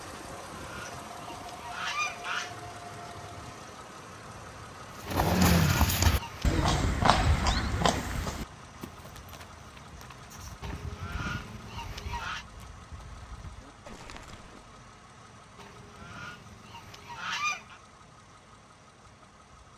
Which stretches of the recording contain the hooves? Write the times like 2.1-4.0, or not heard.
5.0-14.7.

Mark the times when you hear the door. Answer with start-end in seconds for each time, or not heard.
not heard.